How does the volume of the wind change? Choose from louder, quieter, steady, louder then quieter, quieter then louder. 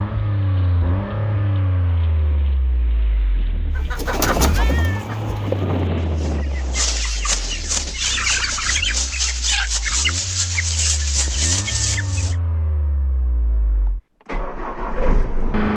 louder then quieter.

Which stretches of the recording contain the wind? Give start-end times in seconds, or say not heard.
0.0-8.8.